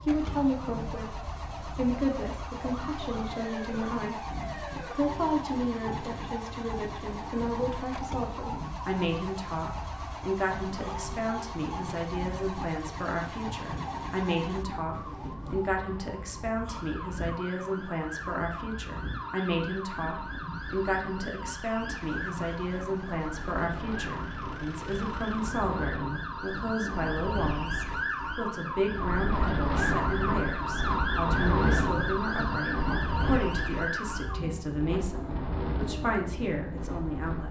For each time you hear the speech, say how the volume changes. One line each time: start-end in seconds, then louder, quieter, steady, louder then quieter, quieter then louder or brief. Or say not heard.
0.0-37.4 steady.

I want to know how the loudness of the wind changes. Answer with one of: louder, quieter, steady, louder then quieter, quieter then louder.
louder.